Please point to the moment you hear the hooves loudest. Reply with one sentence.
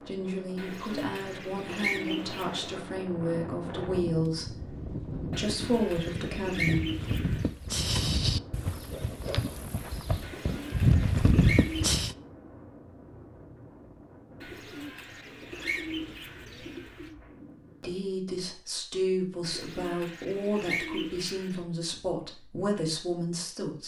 The volume of the hooves peaks at 11 seconds.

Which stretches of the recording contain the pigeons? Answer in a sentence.
You can hear the pigeons from 0.6 to 2.8 s, from 5.3 to 7.5 s, from 10.2 to 12.0 s, from 14.4 to 17.1 s and from 19.4 to 21.6 s.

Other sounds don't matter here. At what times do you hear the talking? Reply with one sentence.
The talking can be heard from 0.0 to 6.8 s and from 17.8 to 23.8 s.